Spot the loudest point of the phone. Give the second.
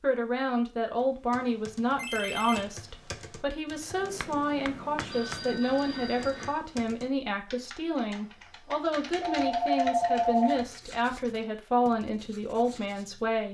10 s.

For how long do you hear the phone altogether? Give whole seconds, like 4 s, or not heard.
4 s.